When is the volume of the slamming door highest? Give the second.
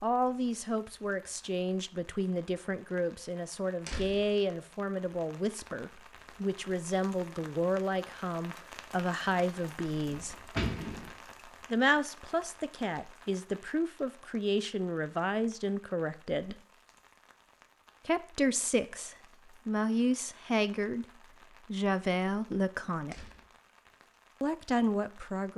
11 s.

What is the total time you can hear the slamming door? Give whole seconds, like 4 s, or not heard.
2 s.